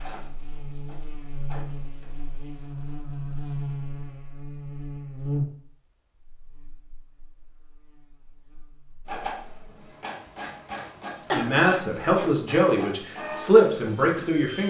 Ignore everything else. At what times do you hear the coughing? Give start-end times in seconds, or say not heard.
10.7-11.6.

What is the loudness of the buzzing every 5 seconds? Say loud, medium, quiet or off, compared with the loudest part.
loud, loud, off.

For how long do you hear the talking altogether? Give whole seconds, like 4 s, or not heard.
3 s.